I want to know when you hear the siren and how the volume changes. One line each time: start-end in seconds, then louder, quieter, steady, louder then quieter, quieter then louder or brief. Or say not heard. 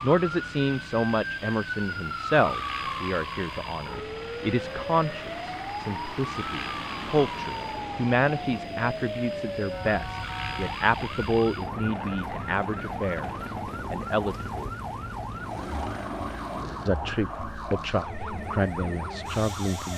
0.0-19.9 steady.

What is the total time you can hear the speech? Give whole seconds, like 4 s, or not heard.
18 s.